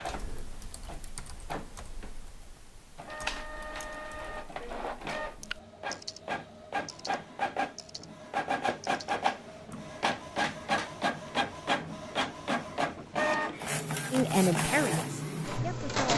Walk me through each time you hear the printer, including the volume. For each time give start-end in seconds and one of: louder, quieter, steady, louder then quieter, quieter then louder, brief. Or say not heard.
0.0-16.1 louder.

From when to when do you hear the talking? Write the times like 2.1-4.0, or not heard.
14.1-16.1.